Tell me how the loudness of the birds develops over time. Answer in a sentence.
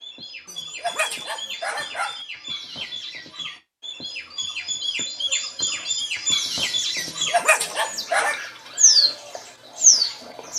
The loudness of the birds goes up.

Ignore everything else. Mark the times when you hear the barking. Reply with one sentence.
You can hear the barking from 0.5 to 2.2 s and from 7.0 to 8.4 s.